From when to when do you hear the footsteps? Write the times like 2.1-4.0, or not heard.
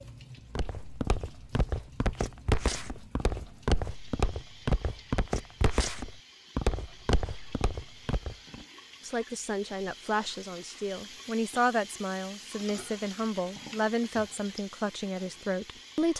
0.6-8.7.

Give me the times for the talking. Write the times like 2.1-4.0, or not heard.
9.1-16.1.